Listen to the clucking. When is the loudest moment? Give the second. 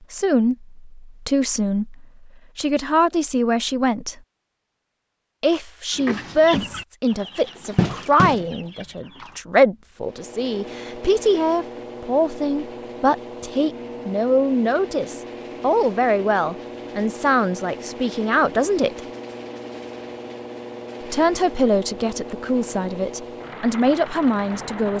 8 s.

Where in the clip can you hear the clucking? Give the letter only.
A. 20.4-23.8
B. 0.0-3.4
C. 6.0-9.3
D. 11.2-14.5
C.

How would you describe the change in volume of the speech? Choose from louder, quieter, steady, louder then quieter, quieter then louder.
steady.